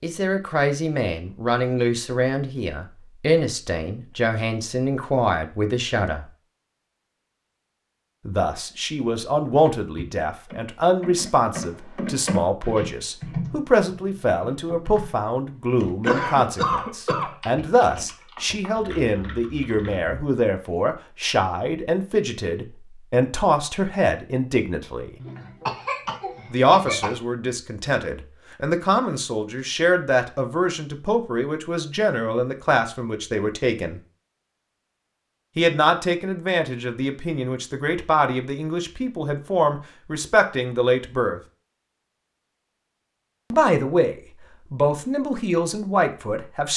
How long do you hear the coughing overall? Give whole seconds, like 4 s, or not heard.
3 s.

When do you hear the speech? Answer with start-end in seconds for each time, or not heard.
0.0-6.2, 8.2-25.1, 26.5-34.0, 35.5-41.4, 43.5-46.7.